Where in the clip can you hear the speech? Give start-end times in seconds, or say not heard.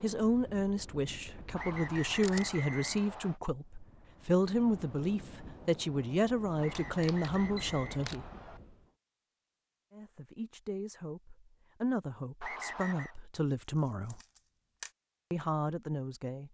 0.0-8.2, 9.9-14.2, 15.3-16.4.